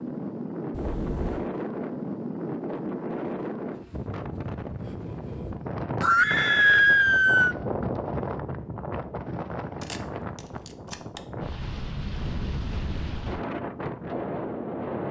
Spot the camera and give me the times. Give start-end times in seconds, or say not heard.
0.7-1.4, 9.8-11.2.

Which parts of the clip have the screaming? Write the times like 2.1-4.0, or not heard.
6.0-7.5.